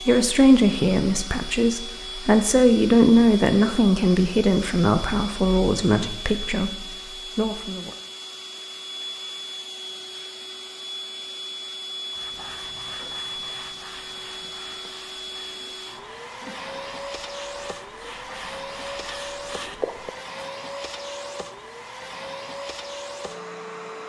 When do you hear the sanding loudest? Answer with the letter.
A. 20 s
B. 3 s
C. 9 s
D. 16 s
A.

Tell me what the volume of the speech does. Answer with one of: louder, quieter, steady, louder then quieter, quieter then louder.
quieter.